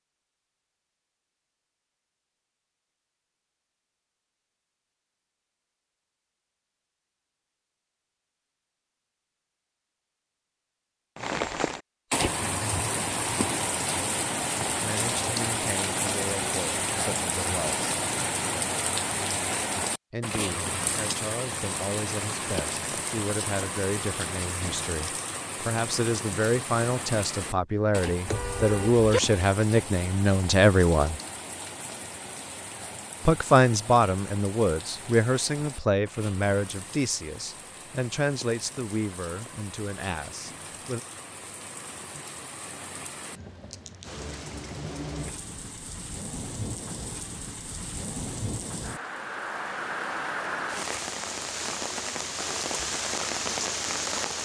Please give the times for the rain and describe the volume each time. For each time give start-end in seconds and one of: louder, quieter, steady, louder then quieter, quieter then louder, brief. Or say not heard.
11.2-54.4 quieter then louder.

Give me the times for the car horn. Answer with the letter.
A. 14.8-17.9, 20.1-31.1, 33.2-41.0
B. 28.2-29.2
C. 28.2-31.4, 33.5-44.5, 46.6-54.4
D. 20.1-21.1
B.